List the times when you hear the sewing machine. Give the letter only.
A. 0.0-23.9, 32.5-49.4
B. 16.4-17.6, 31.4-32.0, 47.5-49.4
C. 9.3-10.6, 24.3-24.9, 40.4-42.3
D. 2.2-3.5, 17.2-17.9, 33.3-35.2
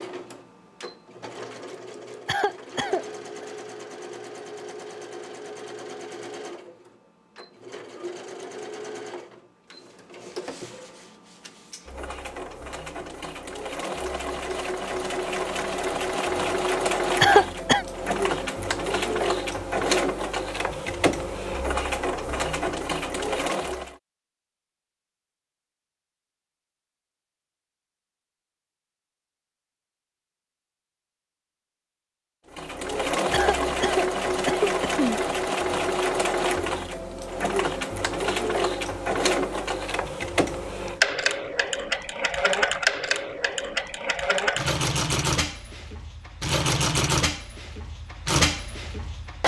A.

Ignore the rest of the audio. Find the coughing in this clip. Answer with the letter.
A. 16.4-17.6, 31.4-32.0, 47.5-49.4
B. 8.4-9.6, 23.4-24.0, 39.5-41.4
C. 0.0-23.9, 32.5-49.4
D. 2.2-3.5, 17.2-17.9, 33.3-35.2
D.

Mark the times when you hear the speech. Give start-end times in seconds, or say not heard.
not heard.